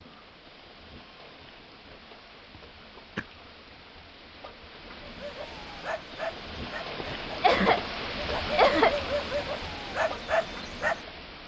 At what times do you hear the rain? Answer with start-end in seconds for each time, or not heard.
0.0-11.4.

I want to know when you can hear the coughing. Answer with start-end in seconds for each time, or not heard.
2.5-3.2, 7.0-7.8, 8.5-8.9.